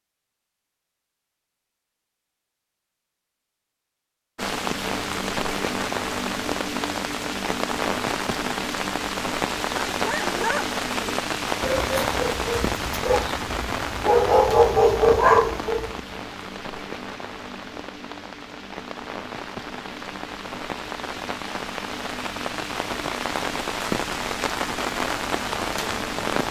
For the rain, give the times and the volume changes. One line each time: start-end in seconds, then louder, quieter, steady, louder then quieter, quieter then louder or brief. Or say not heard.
4.3-26.4 quieter then louder.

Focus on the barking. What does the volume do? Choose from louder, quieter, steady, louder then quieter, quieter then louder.
louder.